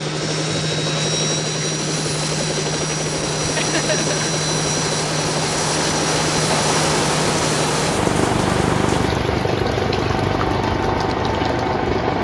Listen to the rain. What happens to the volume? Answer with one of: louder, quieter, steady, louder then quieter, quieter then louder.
louder then quieter.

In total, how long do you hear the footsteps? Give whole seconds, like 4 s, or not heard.
not heard.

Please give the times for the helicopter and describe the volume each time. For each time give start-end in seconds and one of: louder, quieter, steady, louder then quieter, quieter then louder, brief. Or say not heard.
0.0-12.2 steady.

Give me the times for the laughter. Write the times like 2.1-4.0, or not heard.
3.5-4.2.